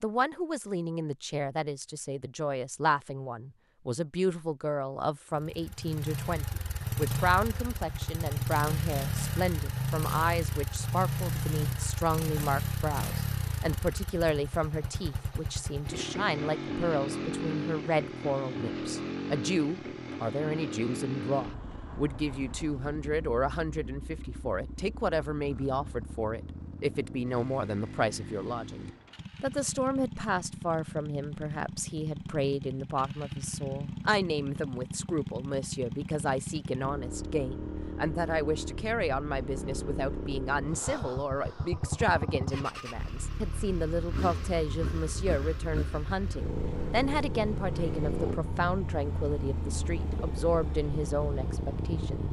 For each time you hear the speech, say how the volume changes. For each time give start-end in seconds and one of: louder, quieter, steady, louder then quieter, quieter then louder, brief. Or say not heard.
0.0-52.2 steady.